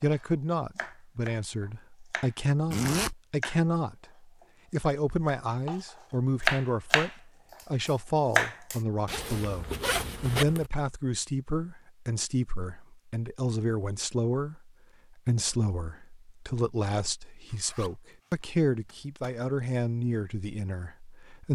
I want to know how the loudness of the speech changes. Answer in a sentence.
The loudness of the speech stays about the same.